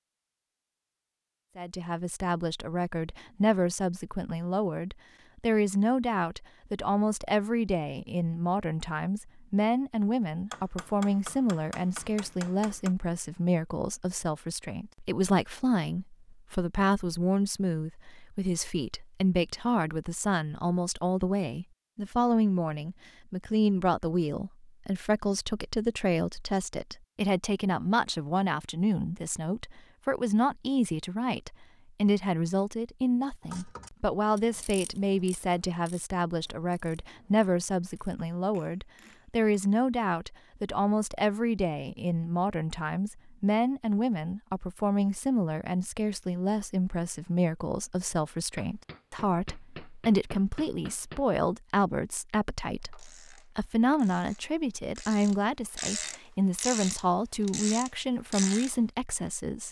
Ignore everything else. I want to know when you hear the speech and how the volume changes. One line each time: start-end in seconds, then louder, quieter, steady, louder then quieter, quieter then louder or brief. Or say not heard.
1.6-59.6 steady.